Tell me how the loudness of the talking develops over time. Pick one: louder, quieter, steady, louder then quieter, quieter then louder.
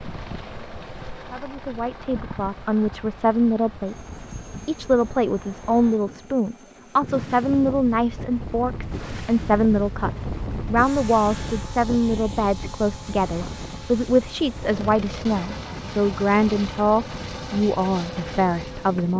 steady.